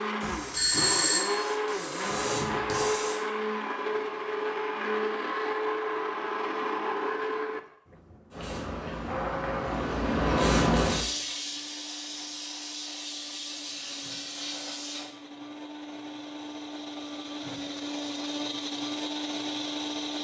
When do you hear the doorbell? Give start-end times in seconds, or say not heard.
0.5-1.4.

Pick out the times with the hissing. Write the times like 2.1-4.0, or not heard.
0.0-3.2, 8.3-15.1.